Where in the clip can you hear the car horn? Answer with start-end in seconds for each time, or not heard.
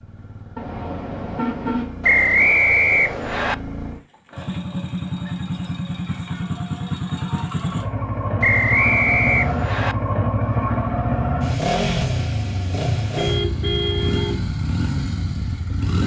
0.6-1.9, 13.2-14.4.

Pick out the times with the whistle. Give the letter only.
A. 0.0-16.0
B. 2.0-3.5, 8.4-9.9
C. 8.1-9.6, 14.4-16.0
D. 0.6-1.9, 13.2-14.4
B.